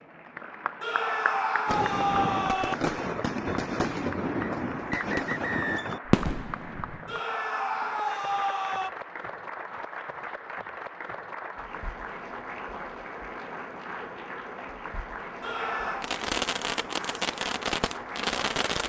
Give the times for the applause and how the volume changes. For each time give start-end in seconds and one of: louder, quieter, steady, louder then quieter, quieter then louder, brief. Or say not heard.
0.0-18.8 steady.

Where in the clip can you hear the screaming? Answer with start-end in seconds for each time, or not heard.
0.8-2.8, 7.0-8.9, 15.4-16.1.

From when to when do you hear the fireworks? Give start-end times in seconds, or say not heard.
1.6-7.2, 16.0-18.8.